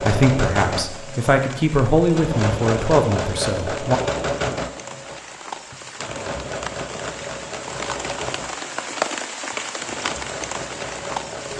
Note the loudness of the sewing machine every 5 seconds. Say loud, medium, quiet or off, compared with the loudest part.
loud, medium, medium.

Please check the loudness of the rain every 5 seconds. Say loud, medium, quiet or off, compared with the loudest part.
medium, loud, loud.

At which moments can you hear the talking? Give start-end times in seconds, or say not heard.
0.0-4.0.